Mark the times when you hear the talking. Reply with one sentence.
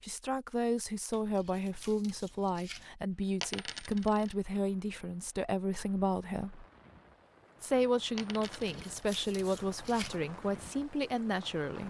You can hear the talking from 0.0 to 6.7 s and from 7.6 to 11.8 s.